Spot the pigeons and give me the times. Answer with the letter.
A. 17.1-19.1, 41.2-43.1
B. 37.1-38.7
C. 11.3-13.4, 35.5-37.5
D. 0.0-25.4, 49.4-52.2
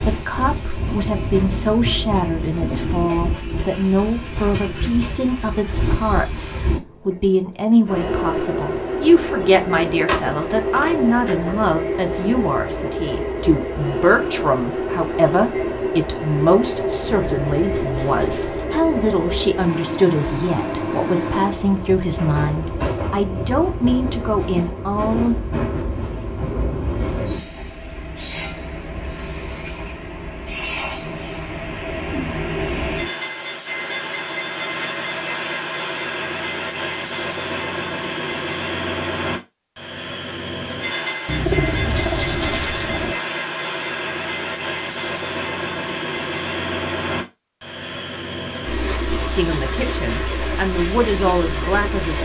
A.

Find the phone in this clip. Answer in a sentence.
You can hear the phone from 10.1 to 11.7 s.